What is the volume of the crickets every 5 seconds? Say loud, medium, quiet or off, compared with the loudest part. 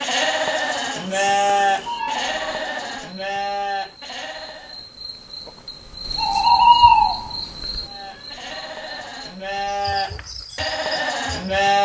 quiet, loud, quiet.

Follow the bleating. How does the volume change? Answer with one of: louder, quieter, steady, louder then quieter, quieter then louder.
quieter then louder.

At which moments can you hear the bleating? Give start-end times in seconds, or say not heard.
0.0-4.8, 7.8-11.7.